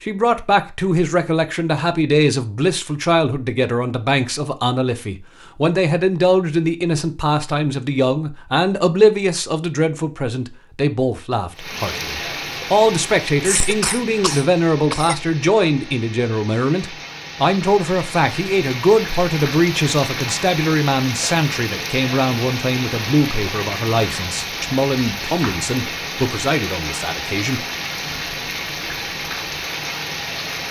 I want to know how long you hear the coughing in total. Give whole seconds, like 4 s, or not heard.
2 s.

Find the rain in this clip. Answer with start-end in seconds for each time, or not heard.
11.6-30.6.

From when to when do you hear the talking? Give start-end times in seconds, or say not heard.
0.0-27.6.